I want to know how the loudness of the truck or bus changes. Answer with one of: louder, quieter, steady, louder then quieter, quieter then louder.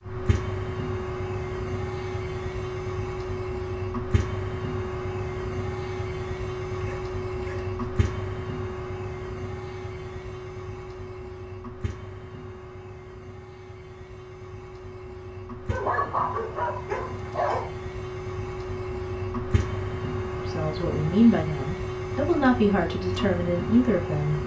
quieter then louder.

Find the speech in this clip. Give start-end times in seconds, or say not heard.
20.4-24.4.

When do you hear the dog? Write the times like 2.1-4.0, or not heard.
6.8-8.1, 15.7-17.7.